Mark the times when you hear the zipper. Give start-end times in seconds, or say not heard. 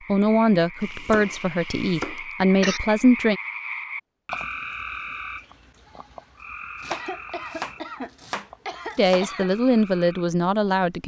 not heard.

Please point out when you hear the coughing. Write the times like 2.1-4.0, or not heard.
0.8-2.8, 6.9-9.5.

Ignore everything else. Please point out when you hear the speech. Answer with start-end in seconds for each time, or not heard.
0.1-3.4, 8.9-11.0.